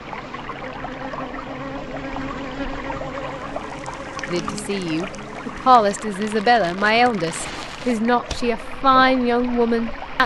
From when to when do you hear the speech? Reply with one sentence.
The speech can be heard from 4.2 to 10.2 s.